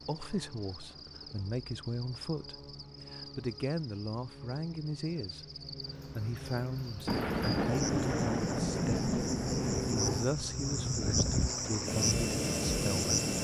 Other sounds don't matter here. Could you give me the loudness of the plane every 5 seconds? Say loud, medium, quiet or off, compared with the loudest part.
quiet, medium, loud.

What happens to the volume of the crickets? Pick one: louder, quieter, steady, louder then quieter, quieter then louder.
louder.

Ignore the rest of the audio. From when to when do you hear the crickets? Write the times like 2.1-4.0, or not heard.
0.0-13.3.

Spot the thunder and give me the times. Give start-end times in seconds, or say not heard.
7.0-10.3.